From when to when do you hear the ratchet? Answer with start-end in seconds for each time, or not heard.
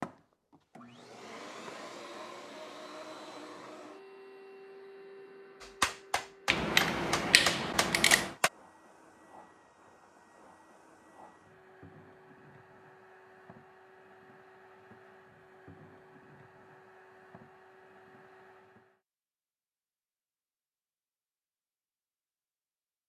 6.5-8.3.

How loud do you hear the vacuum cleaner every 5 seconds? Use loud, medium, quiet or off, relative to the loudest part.
loud, medium, medium, medium, off.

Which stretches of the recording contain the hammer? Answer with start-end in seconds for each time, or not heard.
5.6-8.5.